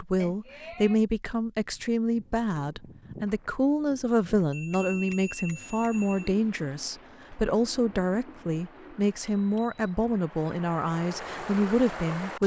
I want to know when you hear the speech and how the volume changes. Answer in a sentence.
You can hear the speech from 0.0 to 12.4 s, at a steady volume.